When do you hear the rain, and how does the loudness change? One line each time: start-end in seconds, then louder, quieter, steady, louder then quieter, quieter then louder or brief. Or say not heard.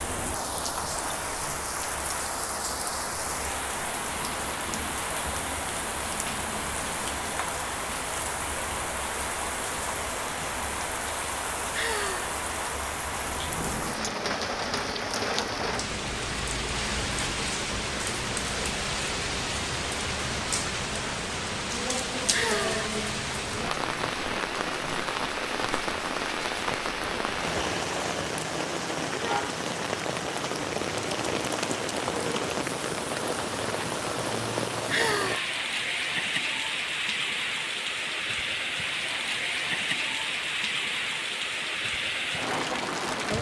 0.0-43.3 steady.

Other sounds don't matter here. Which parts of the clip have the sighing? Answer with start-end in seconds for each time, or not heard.
11.7-12.3, 22.3-22.9, 34.9-35.5.